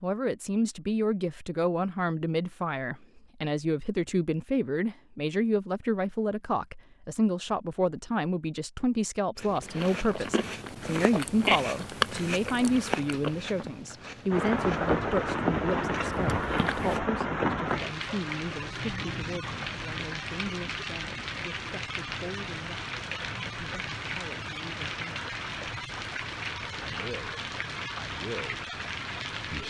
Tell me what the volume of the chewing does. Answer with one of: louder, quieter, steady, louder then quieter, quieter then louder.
louder then quieter.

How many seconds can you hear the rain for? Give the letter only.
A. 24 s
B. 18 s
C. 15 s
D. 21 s
C.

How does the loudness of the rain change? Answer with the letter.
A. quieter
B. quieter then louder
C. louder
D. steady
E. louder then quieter
A.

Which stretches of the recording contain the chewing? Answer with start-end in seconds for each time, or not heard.
9.3-17.0.